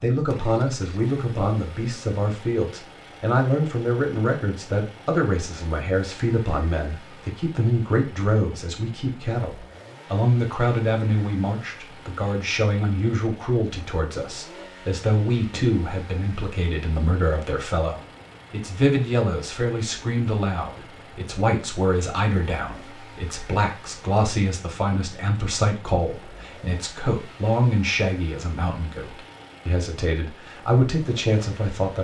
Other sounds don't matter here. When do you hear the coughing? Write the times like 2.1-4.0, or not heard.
not heard.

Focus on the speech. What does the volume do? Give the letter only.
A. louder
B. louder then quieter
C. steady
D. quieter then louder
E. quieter
C.